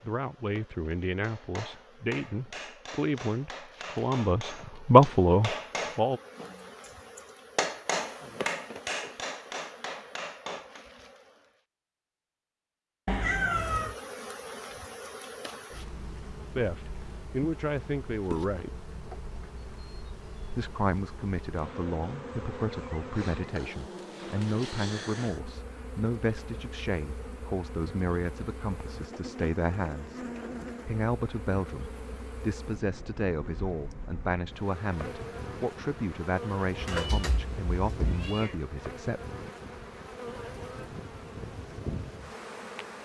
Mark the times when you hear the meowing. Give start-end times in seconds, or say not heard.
13.1-13.9, 36.8-38.6.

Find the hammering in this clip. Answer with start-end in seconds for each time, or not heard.
1.2-10.8.